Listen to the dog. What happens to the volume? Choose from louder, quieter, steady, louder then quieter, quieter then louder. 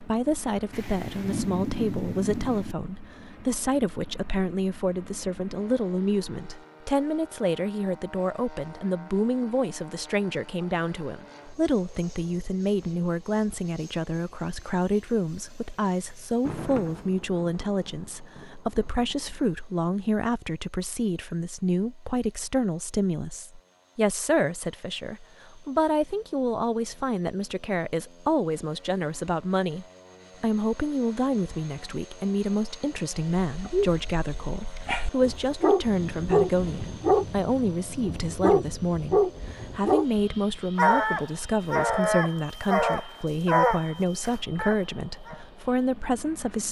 louder.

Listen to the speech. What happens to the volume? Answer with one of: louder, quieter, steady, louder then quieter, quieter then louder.
steady.